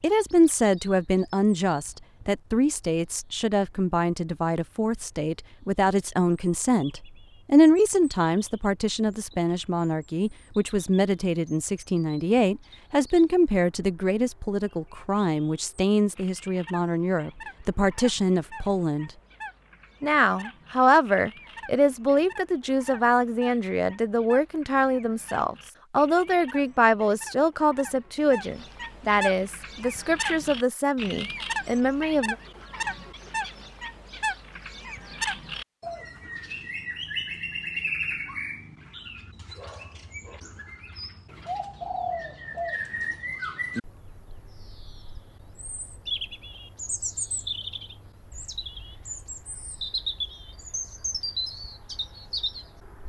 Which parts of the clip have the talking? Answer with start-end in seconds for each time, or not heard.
0.0-19.1, 20.0-32.4.